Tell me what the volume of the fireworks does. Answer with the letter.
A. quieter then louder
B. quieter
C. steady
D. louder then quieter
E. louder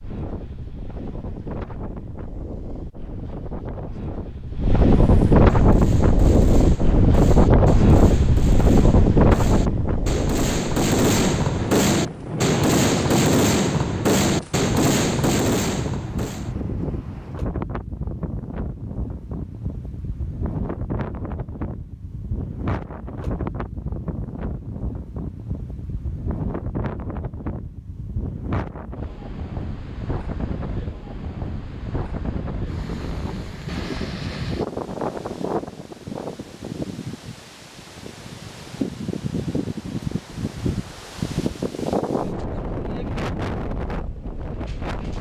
E.